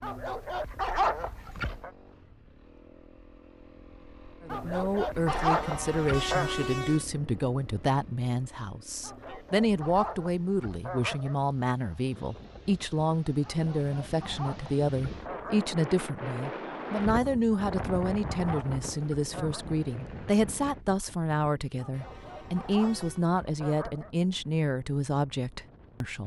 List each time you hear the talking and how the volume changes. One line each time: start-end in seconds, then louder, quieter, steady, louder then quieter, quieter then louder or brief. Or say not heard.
4.5-26.2 steady.